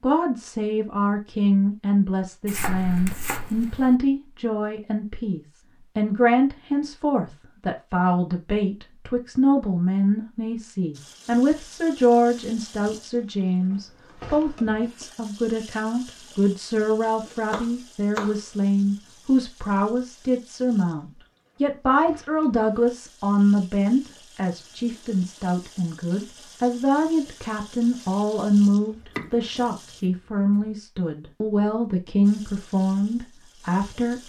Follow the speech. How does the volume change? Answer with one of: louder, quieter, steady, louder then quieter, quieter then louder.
steady.